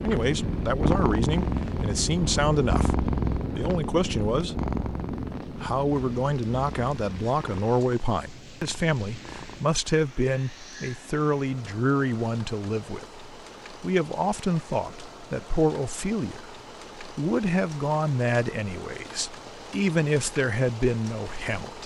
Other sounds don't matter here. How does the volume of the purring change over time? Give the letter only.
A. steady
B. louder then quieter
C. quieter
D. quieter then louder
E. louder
C.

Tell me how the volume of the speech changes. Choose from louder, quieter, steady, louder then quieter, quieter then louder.
steady.